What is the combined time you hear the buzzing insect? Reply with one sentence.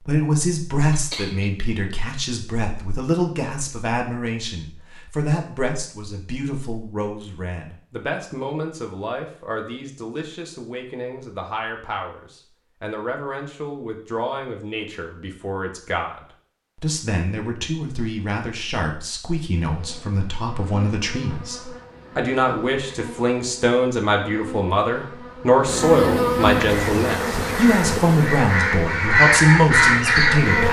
The buzzing insect can be heard for 11 seconds in total.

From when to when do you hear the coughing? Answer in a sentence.
The coughing can be heard from 0.9 to 1.5 s.